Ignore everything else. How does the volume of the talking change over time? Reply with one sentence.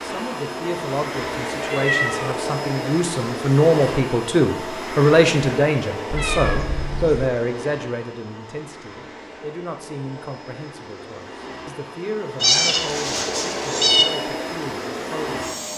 The loudness of the talking goes up, then down.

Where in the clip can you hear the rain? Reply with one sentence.
The rain can't be heard in this clip.